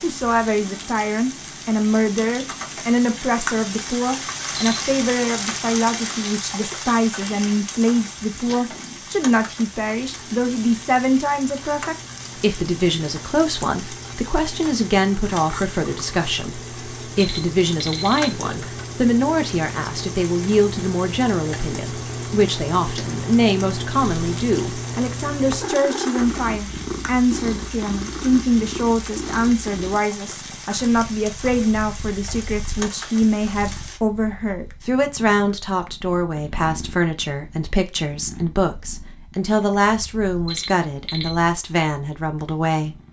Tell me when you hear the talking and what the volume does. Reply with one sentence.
The talking can be heard from 0.0 to 43.0 s, at a steady volume.